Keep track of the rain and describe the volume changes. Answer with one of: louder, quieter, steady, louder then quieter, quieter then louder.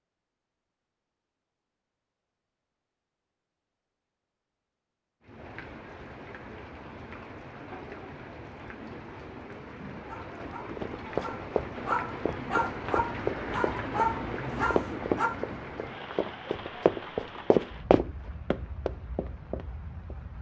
louder then quieter.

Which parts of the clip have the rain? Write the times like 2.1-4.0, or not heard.
5.2-20.3.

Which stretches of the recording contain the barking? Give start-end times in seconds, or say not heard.
10.1-15.4.